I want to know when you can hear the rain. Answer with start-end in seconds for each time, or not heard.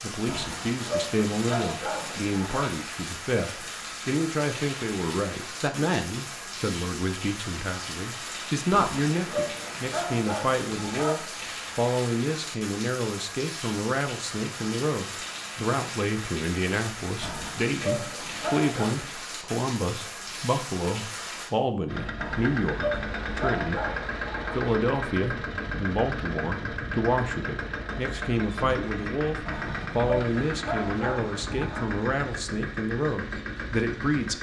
0.0-21.6.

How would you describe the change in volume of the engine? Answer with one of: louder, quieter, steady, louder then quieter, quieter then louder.
steady.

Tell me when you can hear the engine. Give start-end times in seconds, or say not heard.
21.9-34.3.